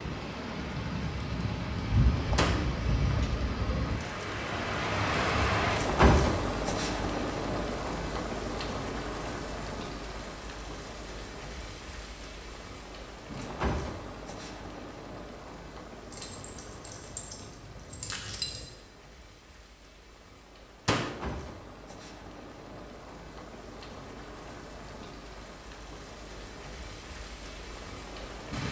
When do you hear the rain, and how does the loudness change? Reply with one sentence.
The rain can be heard from 0.0 to 28.6 s, getting quieter.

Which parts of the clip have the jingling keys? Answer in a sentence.
The jingling keys can be heard from 16.1 to 18.6 s.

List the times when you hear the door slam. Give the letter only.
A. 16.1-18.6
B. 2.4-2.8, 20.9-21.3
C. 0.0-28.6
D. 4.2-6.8
B.